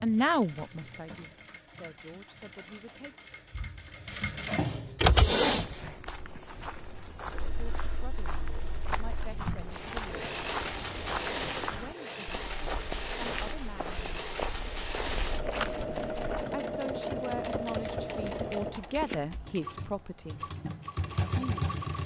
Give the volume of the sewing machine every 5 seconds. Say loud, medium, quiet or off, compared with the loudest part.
medium, loud, loud, loud, loud.